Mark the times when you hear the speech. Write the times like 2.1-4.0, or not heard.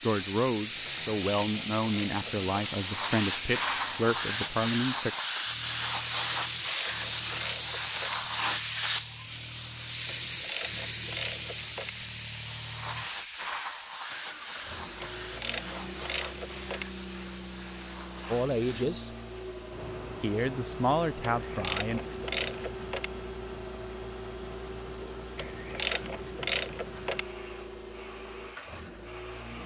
0.0-5.1, 18.3-19.1, 20.2-22.0.